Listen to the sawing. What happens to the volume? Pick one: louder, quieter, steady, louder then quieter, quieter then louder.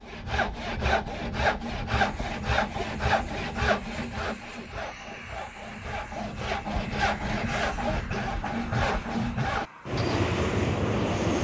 quieter then louder.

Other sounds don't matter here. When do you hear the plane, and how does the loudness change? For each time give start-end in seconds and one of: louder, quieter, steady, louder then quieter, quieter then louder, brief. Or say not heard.
2.1-11.3 louder.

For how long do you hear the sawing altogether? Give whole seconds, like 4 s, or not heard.
10 s.